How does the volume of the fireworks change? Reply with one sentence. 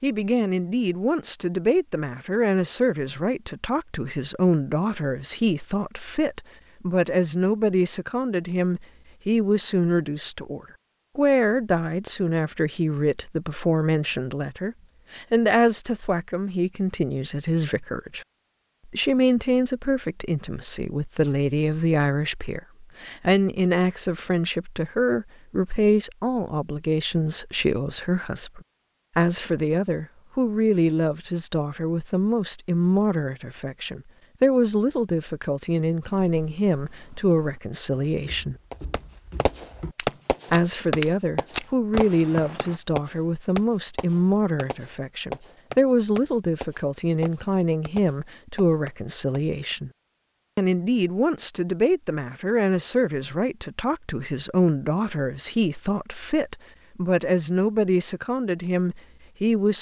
The loudness of the fireworks goes down.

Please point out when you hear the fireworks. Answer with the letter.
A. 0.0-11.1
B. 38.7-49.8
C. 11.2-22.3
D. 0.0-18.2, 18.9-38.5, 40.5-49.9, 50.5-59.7
B.